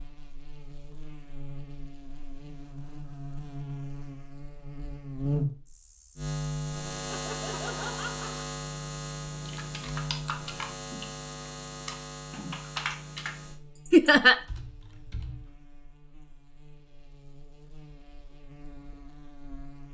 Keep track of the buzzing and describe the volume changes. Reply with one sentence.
The volume of the buzzing goes up, then down.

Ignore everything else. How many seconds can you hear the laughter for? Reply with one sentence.
The laughter can be heard for 2 seconds in total.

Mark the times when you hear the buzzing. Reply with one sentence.
The buzzing can be heard from 0.0 to 19.9 s.